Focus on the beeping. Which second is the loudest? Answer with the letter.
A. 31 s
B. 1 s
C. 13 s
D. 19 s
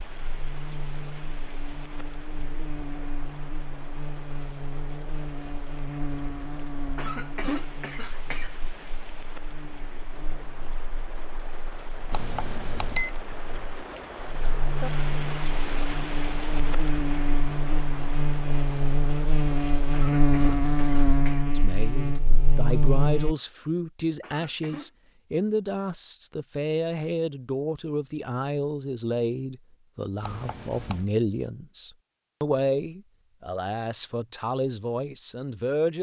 C.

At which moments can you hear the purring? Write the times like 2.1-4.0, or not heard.
not heard.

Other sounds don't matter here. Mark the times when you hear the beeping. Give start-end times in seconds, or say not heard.
12.1-13.1, 30.2-31.1.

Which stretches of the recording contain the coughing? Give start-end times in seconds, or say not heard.
7.0-9.3, 19.9-21.4, 24.2-24.9.